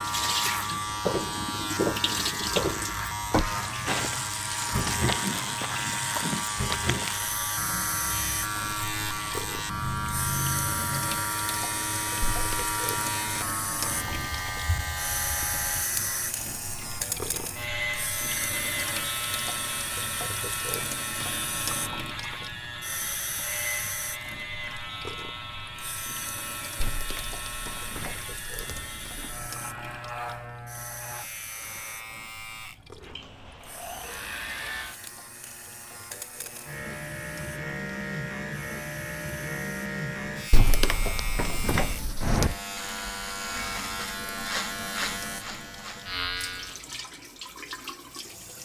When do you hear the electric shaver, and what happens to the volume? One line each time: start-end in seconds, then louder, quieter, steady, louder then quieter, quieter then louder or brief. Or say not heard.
0.0-46.8 quieter then louder.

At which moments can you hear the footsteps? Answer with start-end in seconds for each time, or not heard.
0.8-7.2.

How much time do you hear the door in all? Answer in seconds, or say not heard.
5 s.